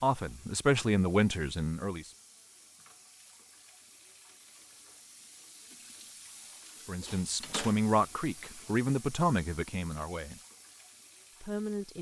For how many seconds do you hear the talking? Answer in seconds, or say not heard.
6 s.